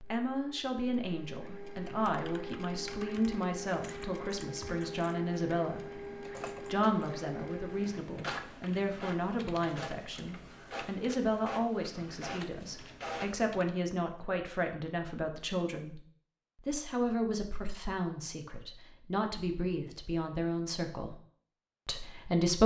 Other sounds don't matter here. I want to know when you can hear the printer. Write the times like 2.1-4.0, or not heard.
0.0-13.5.